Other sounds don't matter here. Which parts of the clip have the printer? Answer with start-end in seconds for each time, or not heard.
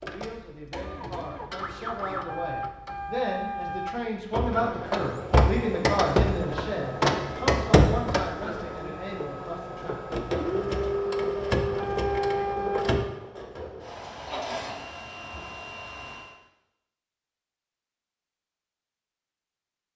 0.0-16.4.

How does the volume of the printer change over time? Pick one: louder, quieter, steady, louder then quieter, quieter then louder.
louder then quieter.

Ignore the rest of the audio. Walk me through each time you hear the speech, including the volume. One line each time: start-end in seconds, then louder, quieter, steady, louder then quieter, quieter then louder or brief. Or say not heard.
0.0-10.1 louder then quieter.